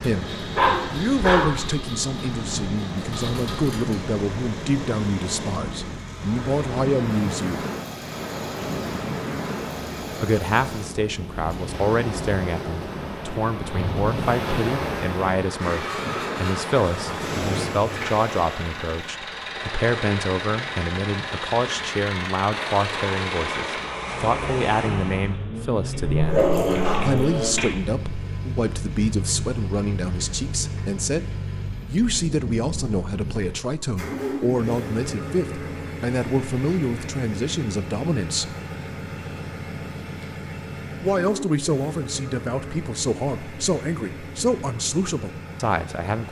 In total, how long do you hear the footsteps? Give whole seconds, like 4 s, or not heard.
not heard.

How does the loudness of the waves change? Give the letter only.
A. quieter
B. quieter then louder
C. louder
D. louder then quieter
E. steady
E.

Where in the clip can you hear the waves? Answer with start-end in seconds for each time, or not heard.
0.0-25.4.